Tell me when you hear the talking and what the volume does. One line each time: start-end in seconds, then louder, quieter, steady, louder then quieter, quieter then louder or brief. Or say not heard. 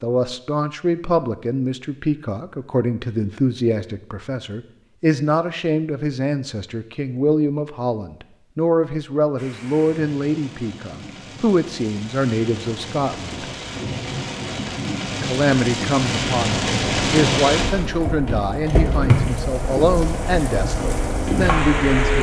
0.0-13.3 steady
15.2-22.1 steady.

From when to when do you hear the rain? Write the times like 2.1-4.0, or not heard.
9.3-22.1.